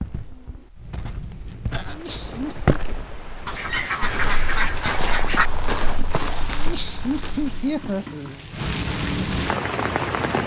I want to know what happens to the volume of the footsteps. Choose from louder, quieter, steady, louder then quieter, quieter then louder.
louder then quieter.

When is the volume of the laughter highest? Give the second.
8 s.